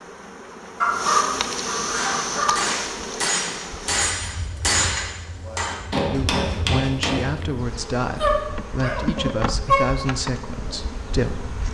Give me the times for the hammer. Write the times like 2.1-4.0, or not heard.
1.9-7.3.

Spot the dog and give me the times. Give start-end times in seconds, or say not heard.
0.8-2.7, 8.2-9.8.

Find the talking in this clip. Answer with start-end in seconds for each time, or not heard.
6.1-11.6.